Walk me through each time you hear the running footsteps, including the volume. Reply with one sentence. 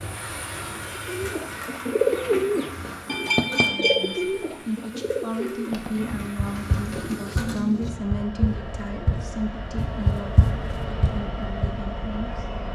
The running footsteps can be heard from 5.7 to 11.7 s, getting louder.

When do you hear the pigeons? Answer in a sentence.
The pigeons can be heard from 0.8 to 9.3 s.